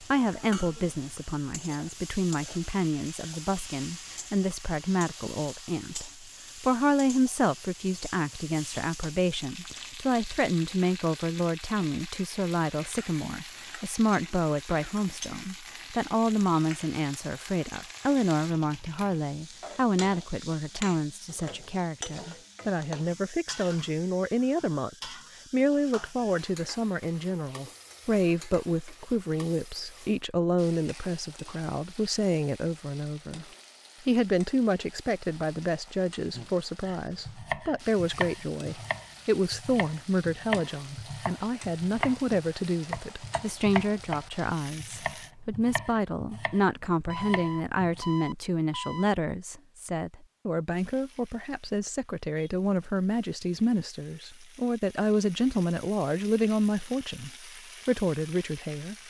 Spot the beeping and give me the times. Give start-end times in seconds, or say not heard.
47.0-49.0.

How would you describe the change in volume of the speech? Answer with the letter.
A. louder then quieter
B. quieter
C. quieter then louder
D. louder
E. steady
E.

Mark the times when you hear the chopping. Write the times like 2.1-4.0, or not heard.
36.4-48.0.